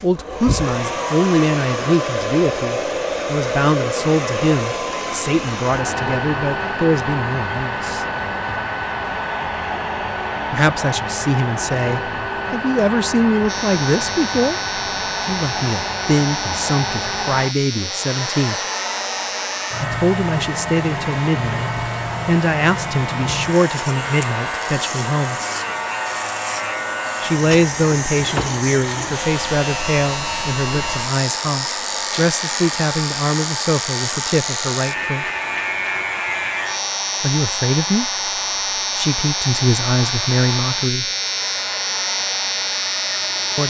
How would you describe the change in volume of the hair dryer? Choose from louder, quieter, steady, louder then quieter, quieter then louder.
quieter.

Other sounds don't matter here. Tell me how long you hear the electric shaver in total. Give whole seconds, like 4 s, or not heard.
30 s.